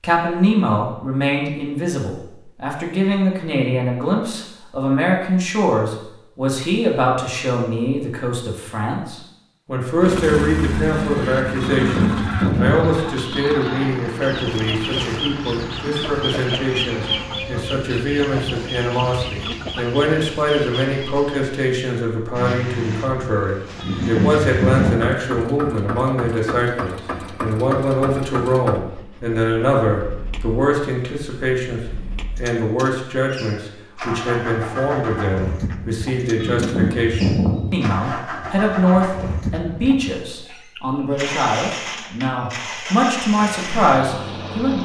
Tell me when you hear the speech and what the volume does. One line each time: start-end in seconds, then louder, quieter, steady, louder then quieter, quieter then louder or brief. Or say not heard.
0.0-44.8 steady.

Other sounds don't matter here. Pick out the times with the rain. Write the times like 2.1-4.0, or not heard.
not heard.